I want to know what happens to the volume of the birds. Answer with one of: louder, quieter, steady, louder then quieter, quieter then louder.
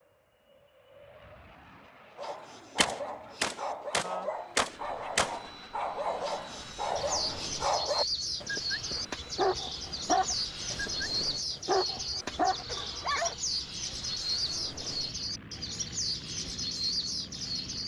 steady.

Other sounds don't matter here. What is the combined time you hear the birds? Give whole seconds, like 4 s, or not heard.
11 s.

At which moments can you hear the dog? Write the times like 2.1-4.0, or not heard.
2.1-13.3.